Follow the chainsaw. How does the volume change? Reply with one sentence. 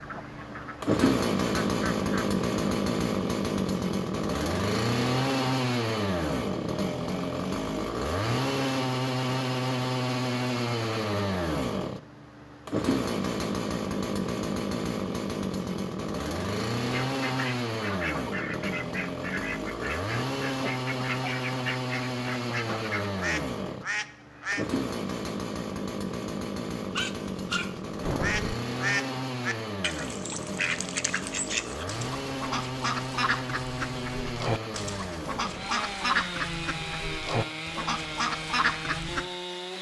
The volume of the chainsaw goes down.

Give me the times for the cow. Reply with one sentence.
The cow can't be heard in this clip.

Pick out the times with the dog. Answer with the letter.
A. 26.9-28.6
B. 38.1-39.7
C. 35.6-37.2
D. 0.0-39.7
A.